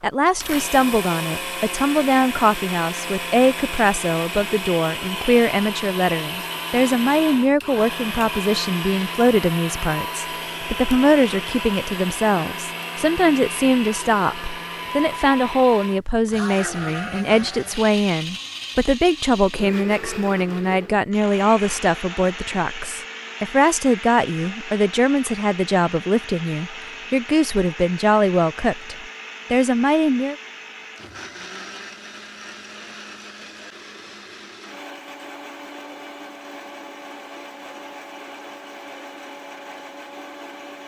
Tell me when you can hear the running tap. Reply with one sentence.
You can't hear the running tap here.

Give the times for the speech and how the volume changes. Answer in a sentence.
You can hear the speech from 0.0 to 30.4 s, at a steady volume.